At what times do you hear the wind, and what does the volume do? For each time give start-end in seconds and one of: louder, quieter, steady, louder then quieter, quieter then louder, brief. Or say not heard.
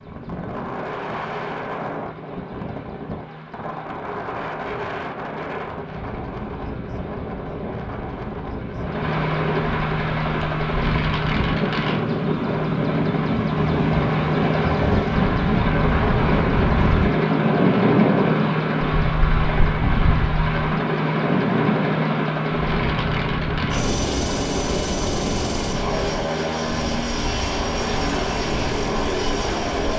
0.0-29.9 louder then quieter.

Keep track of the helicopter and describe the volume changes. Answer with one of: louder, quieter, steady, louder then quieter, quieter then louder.
louder.